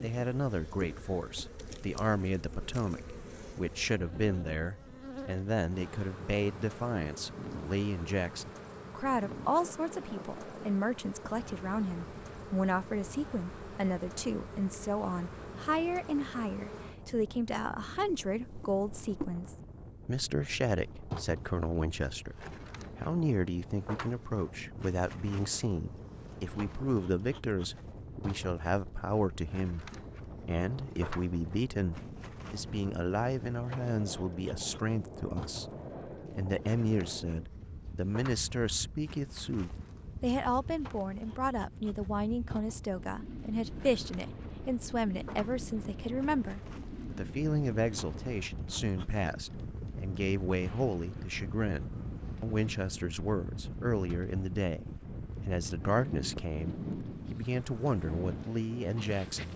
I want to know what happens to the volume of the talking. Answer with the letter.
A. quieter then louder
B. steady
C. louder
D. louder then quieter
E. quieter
B.